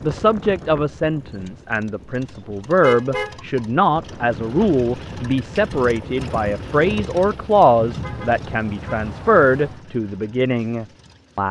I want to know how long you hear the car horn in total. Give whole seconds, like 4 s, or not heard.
2 s.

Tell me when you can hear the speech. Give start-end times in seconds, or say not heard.
0.0-11.4.